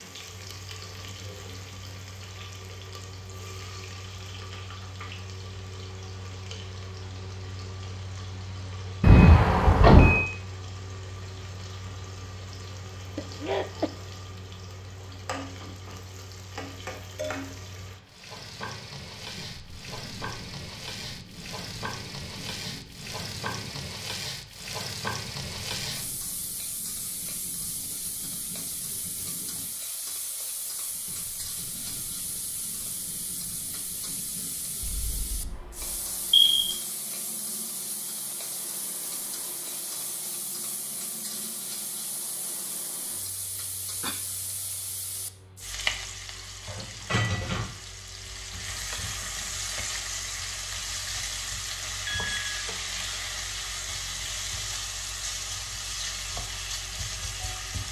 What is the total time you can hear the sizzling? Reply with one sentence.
The sizzling can be heard for 58 seconds in total.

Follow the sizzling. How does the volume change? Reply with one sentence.
The volume of the sizzling goes up.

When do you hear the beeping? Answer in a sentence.
The beeping can be heard from 9.0 to 10.2 s, from 34.8 to 36.8 s and from 52.0 to 52.6 s.